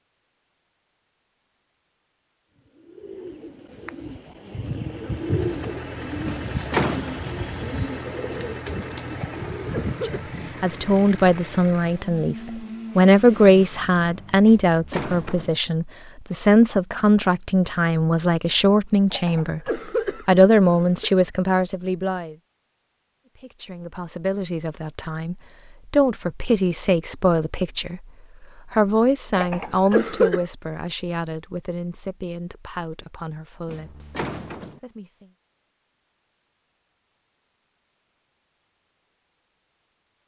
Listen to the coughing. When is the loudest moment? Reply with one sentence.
The loudest moment of the coughing is at 30 seconds.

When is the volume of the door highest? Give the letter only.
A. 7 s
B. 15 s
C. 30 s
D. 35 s
A.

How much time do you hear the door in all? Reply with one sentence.
The door can be heard for 3 seconds in total.